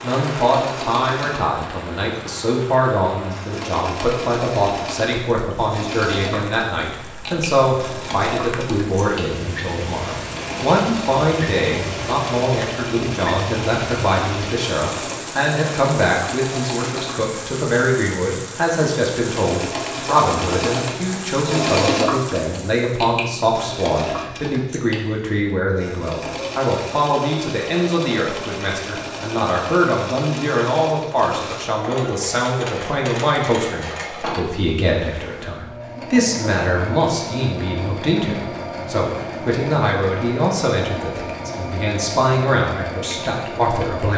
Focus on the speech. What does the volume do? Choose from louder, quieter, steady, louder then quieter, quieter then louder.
steady.